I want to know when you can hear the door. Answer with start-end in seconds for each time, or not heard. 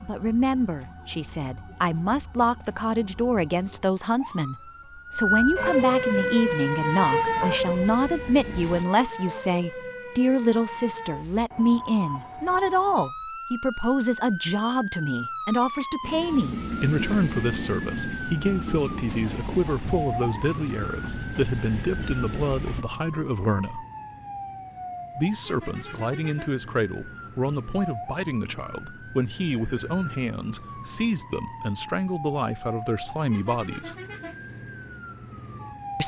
not heard.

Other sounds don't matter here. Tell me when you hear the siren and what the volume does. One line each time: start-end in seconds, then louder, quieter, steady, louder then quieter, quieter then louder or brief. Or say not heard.
0.0-36.0 quieter.